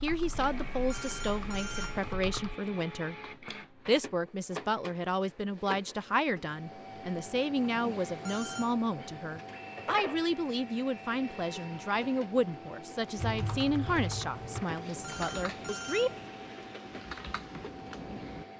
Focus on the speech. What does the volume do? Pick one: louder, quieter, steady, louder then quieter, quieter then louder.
steady.